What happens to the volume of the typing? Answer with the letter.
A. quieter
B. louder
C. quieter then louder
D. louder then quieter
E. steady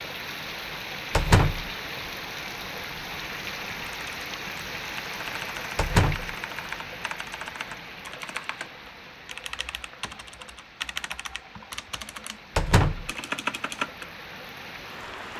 B.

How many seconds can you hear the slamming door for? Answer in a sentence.
The slamming door can be heard for 2 seconds in total.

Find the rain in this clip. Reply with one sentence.
The rain can be heard from 0.0 to 15.3 s.